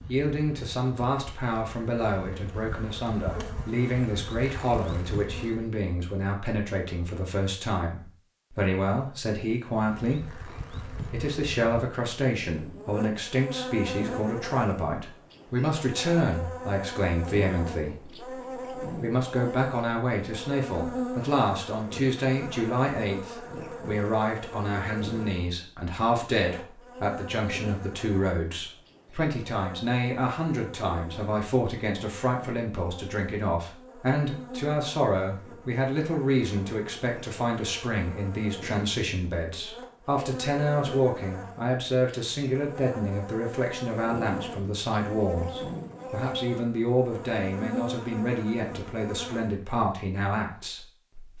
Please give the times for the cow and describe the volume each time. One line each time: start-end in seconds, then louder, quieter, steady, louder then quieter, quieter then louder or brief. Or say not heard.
not heard.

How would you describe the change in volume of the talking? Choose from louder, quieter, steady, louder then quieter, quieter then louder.
steady.